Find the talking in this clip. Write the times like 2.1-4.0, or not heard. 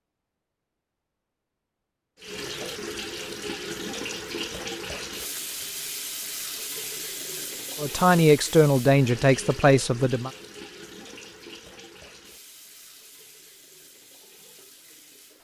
7.8-10.3.